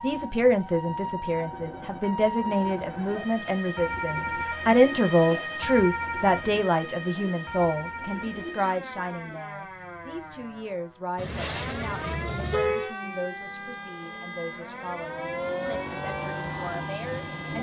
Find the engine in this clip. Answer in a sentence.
You can hear the engine from 13.0 to 17.5 s.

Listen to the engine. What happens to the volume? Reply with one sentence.
The volume of the engine goes up.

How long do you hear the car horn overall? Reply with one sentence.
The car horn can be heard for 2 seconds in total.